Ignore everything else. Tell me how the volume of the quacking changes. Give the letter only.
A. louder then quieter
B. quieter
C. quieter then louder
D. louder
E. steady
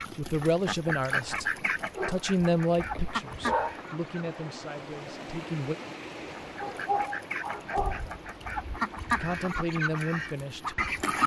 C.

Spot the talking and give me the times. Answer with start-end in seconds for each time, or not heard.
0.1-5.8, 9.2-11.2.